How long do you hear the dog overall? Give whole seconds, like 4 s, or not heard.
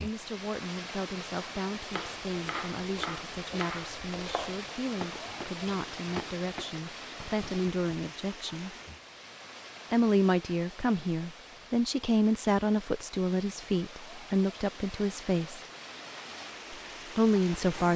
not heard.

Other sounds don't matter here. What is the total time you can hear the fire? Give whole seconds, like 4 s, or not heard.
not heard.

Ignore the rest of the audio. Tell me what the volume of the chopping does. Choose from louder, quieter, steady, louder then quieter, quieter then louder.
quieter.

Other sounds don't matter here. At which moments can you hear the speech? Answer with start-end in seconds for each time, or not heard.
0.0-8.8, 9.9-15.6, 16.7-17.9.